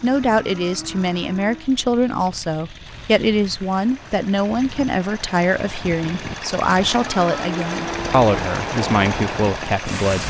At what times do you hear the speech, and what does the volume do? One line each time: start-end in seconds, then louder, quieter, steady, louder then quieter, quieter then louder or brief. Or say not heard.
0.0-10.2 steady.